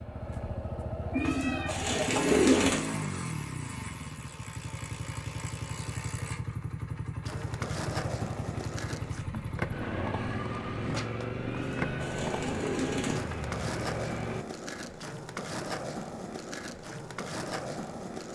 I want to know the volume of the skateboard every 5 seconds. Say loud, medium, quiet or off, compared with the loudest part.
off, loud, loud, loud.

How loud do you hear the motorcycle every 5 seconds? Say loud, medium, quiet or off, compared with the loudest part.
loud, loud, loud, off.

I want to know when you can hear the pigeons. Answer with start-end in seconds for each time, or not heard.
1.1-2.8, 11.4-13.2.